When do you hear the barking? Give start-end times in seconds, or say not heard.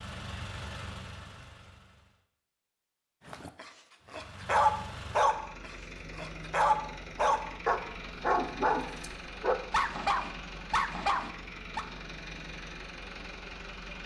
3.2-11.8.